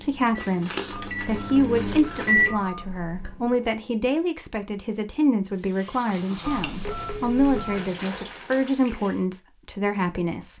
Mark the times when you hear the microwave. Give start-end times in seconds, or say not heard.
0.0-2.5.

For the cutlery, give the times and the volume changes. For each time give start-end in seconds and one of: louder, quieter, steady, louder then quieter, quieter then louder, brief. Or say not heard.
not heard.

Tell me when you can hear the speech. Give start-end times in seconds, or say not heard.
0.0-10.5.